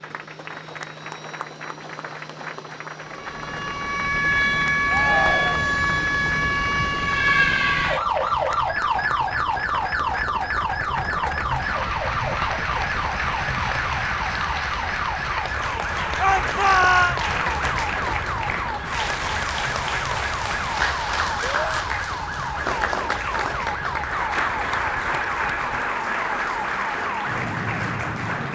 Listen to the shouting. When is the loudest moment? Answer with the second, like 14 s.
17 s.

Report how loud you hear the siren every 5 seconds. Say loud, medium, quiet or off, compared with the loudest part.
loud, loud, medium, medium, medium, medium.